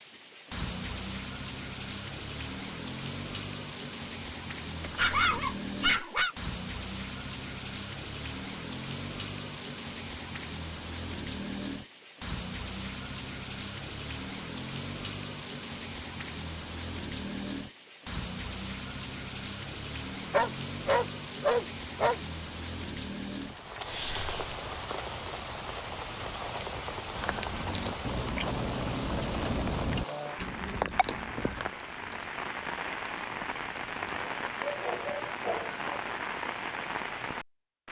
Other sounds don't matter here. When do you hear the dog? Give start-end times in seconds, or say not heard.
4.8-6.3, 20.3-22.2, 34.5-36.0.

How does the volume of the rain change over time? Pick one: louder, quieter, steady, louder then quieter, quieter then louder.
steady.